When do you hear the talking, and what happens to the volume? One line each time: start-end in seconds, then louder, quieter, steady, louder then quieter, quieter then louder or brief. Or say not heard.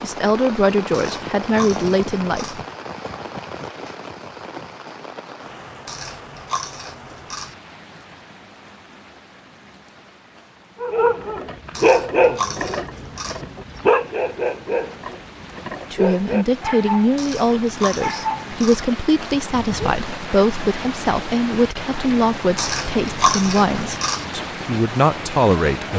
0.0-2.6 brief
15.9-25.9 steady.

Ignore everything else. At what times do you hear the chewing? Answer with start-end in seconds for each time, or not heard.
0.9-2.6, 5.8-7.5, 11.8-13.4, 17.1-18.9, 22.6-24.2.